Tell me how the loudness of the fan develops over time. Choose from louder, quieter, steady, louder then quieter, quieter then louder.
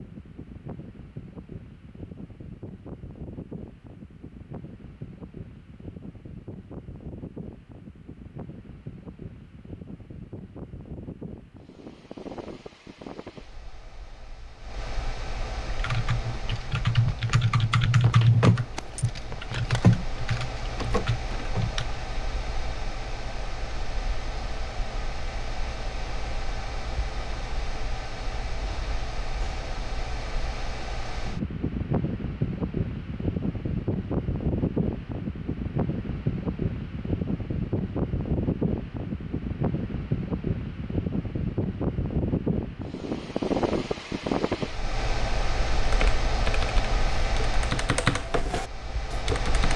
louder.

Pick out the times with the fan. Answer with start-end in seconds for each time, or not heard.
0.0-49.7.